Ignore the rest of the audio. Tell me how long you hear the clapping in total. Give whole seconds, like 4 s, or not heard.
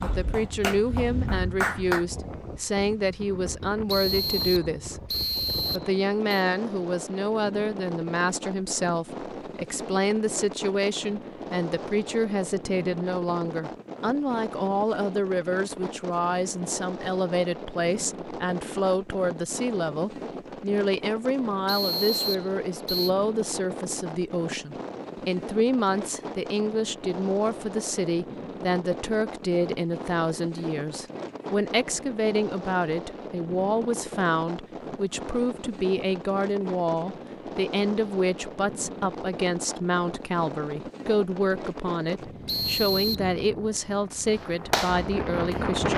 3 s.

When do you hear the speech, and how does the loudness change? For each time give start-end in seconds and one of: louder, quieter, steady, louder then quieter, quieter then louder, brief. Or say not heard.
0.0-5.0 steady
5.7-45.9 steady.